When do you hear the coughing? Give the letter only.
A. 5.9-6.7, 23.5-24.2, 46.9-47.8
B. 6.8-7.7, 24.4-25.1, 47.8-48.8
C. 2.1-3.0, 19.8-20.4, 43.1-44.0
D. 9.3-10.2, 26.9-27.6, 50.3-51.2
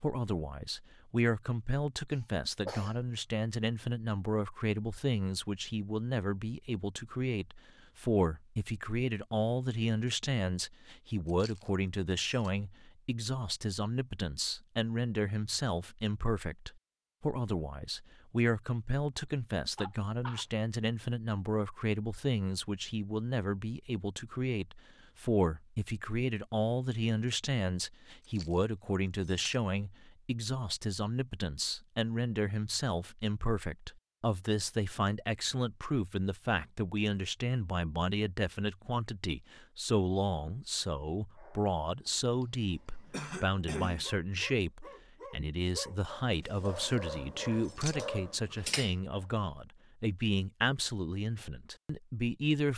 C.